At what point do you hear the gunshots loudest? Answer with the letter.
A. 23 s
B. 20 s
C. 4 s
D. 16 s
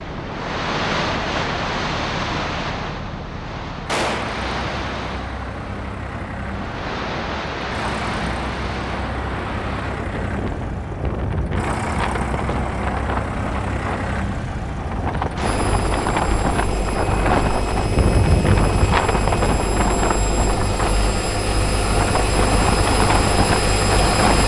C.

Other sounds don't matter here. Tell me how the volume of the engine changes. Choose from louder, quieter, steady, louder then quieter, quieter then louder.
louder.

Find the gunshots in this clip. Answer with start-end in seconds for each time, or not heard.
3.9-4.4, 15.3-15.8.